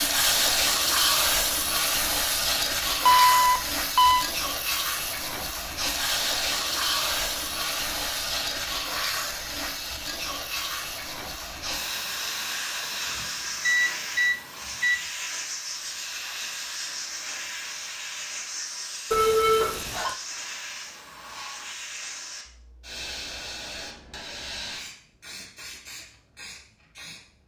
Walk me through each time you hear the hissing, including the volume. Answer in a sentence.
The hissing can be heard from 0.0 to 27.2 s, getting quieter.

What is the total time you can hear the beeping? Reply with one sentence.
The beeping can be heard for 4 seconds in total.